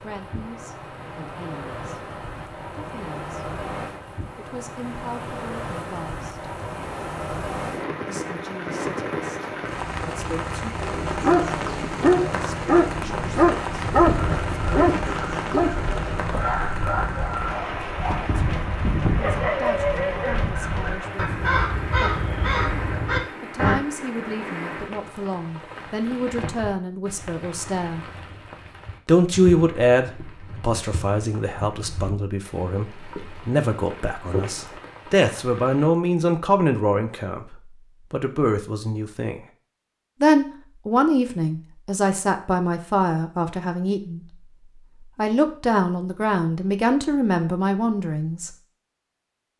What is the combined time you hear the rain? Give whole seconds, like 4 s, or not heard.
36 s.